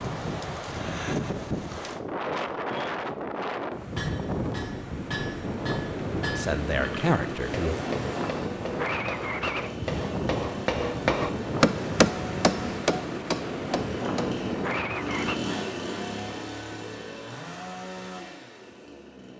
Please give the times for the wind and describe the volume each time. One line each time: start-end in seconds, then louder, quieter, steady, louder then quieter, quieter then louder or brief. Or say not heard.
0.0-15.3 steady.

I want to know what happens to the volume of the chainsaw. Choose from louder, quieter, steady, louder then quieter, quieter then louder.
louder then quieter.